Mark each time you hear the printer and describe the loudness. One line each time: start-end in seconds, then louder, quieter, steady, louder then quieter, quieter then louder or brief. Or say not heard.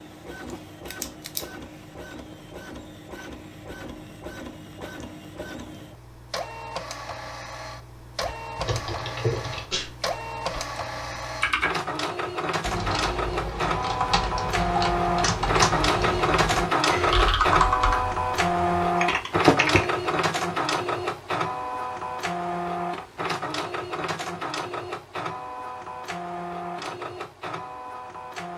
0.0-28.5 louder then quieter.